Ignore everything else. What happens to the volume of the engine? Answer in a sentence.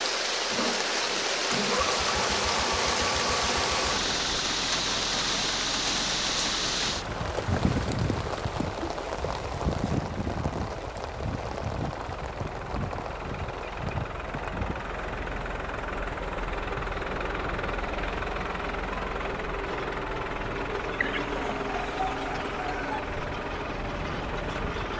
The volume of the engine goes down, then up.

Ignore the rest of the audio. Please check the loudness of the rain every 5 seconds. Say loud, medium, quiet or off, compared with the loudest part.
loud, loud, medium, quiet, quiet.